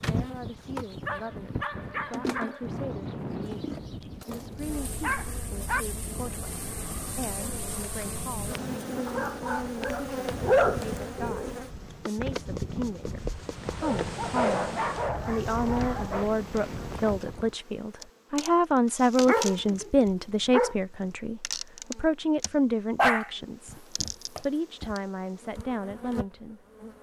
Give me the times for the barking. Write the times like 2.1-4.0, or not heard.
1.1-2.6, 5.0-5.8, 9.1-11.6, 13.8-16.3, 19.2-20.8, 22.9-24.9.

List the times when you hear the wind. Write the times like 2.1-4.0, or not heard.
0.0-17.6.